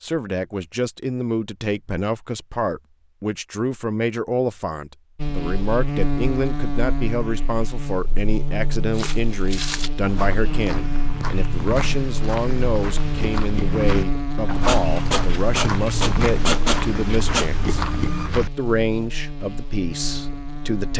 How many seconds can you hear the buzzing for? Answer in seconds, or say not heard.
16 s.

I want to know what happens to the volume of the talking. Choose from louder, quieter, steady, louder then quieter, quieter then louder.
steady.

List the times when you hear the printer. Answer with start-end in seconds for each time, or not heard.
14.7-18.3.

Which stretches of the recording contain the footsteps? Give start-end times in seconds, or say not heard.
8.9-18.7.